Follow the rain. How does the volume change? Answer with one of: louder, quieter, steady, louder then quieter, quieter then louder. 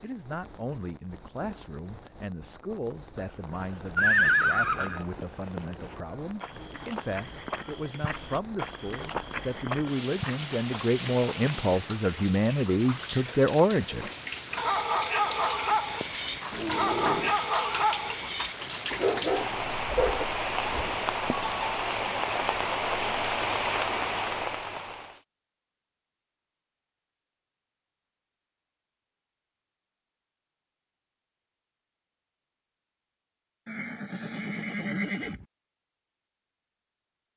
louder.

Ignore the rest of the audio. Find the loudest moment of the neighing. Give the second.
4 s.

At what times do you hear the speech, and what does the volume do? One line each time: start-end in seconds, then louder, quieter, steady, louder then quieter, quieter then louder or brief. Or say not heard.
0.0-14.1 louder.